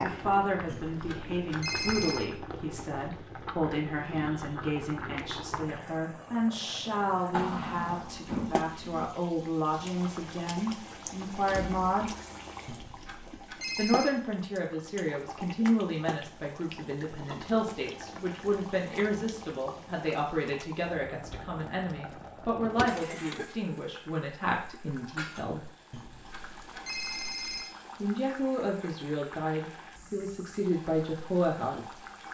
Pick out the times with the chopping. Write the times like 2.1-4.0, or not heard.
not heard.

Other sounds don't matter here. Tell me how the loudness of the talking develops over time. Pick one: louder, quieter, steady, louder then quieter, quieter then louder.
steady.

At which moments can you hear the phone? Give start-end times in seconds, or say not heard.
0.7-2.3, 12.7-14.1, 25.9-27.8.